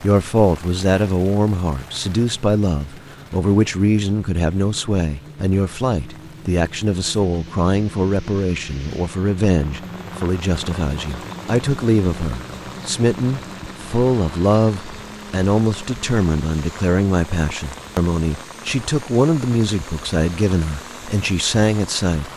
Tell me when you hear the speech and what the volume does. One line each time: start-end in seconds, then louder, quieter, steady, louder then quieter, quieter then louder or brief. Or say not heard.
0.0-22.3 steady.